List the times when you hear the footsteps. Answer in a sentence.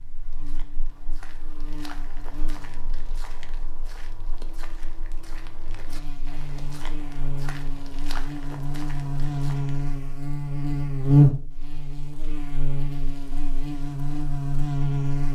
You can hear the footsteps from 0.0 to 9.9 s.